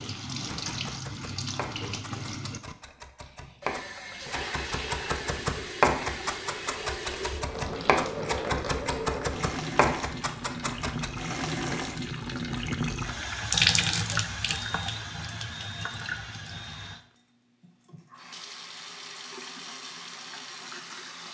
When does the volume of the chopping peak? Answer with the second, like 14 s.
6 s.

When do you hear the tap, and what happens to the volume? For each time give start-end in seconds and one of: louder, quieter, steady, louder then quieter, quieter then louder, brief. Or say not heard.
0.0-21.3 louder then quieter.